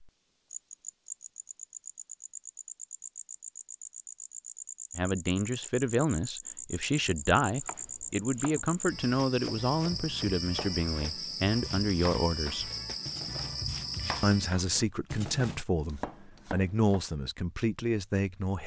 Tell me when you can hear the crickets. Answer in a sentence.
The crickets can be heard from 0.0 to 14.6 s.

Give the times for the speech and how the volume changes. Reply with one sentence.
You can hear the speech from 5.0 to 12.7 s, at a steady volume; and from 14.2 to 18.6 s, at a steady volume.